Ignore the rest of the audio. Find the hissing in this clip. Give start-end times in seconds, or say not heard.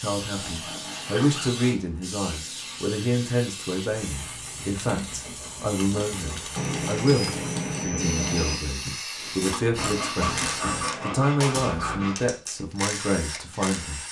0.0-10.6.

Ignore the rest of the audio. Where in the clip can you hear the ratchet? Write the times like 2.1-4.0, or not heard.
9.2-14.0.